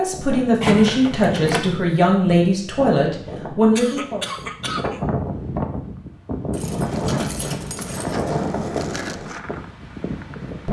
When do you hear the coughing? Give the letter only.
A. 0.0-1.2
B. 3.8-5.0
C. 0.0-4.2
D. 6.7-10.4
B.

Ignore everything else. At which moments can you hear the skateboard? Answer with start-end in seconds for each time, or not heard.
6.7-10.4.